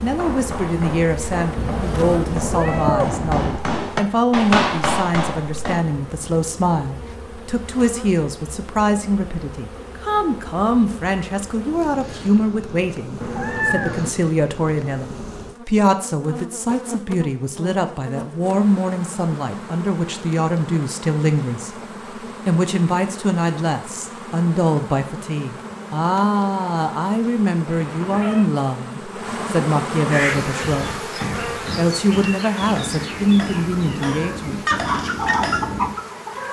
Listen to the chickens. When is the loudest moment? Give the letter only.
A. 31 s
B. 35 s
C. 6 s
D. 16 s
B.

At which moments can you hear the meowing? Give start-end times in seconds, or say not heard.
1.6-3.6, 13.2-14.1, 27.6-28.5.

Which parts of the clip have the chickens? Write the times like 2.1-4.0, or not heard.
33.5-36.4.